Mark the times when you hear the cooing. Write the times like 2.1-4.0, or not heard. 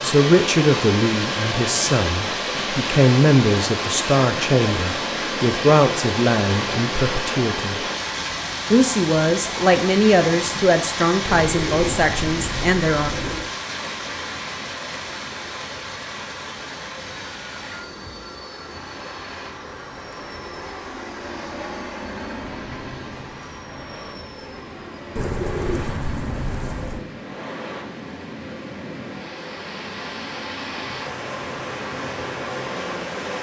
11.2-13.5, 25.1-27.1.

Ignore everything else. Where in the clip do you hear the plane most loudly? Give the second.
22 s.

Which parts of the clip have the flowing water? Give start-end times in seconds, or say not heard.
0.0-33.3.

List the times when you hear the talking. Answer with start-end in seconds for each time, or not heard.
0.0-7.8, 8.7-13.1.